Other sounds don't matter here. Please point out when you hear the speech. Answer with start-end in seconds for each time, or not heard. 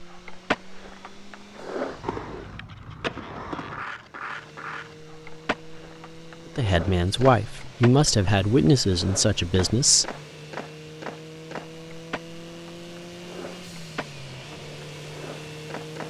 6.5-10.1.